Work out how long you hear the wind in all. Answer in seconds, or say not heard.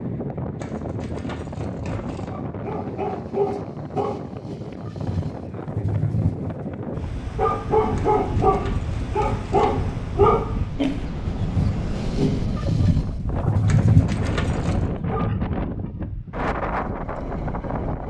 18 s.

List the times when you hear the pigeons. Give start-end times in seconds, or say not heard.
not heard.